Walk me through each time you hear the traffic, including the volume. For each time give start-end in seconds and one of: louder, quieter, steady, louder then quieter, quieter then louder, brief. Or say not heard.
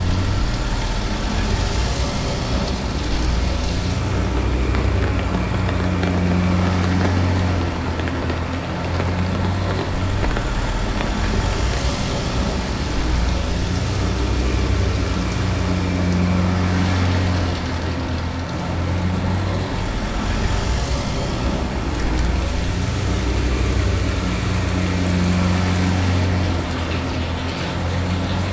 0.0-28.4 steady.